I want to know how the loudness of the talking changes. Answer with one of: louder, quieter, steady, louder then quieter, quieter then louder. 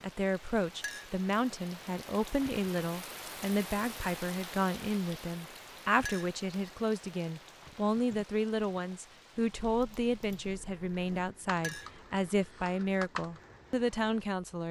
steady.